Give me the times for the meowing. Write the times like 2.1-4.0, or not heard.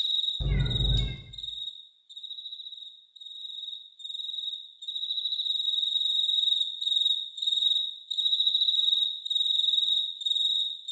0.4-1.2.